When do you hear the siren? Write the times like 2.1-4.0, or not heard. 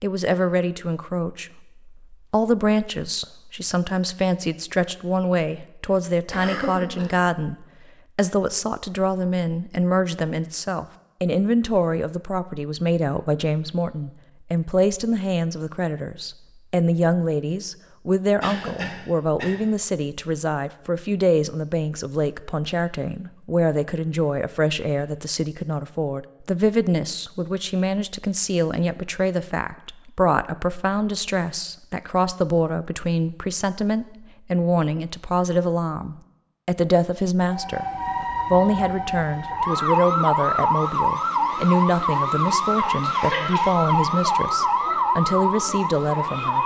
37.5-46.6.